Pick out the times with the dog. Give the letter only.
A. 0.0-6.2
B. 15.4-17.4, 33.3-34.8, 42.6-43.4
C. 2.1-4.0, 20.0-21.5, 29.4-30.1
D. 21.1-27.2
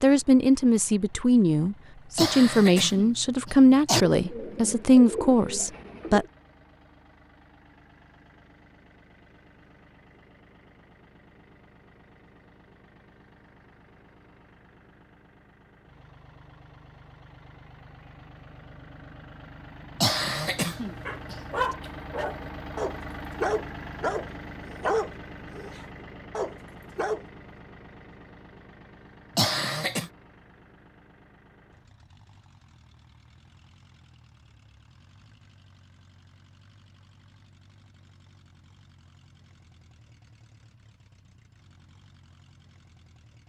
D.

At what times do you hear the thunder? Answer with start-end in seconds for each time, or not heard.
not heard.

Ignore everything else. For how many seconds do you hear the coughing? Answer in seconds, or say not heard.
4 s.